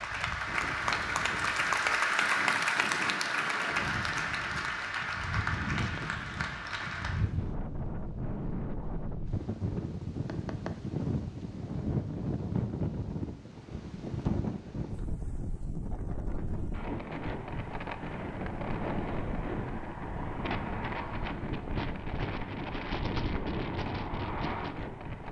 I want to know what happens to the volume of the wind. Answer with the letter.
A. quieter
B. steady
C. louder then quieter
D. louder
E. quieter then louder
D.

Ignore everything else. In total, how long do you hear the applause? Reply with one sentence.
You can hear the applause for 7 seconds altogether.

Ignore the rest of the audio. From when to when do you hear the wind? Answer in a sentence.
The wind can be heard from 0.0 to 25.2 s.